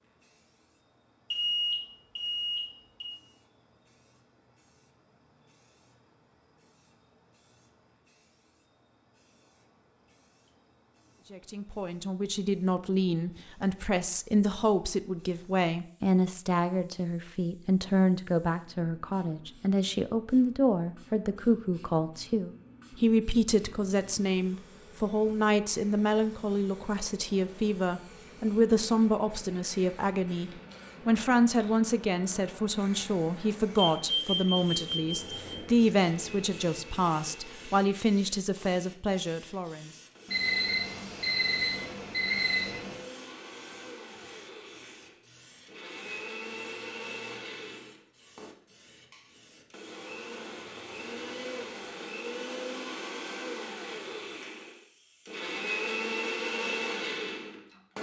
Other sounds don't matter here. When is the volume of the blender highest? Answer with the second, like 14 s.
56 s.